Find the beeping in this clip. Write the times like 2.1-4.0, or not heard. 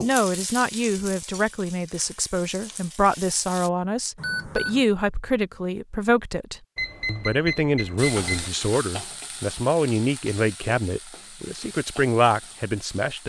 4.2-4.8, 6.8-8.5.